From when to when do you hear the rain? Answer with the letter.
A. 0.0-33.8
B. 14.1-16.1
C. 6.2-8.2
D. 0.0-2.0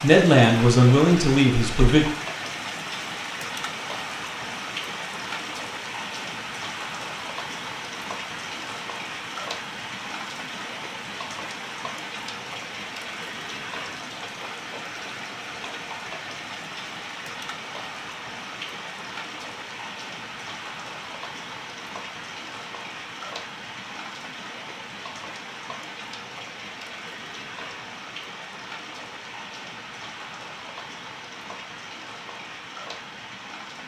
A.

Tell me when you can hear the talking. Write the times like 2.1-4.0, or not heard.
0.0-2.0.